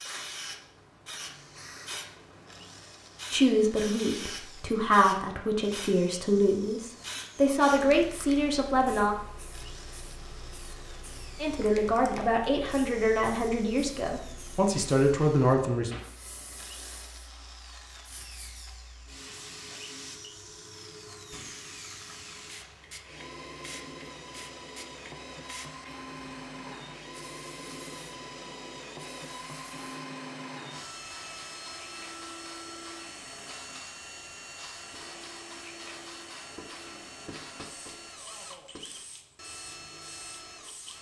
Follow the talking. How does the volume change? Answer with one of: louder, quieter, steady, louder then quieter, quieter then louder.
steady.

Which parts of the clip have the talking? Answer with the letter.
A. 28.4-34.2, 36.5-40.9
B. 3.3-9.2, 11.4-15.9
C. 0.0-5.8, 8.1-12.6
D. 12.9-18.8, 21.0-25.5
B.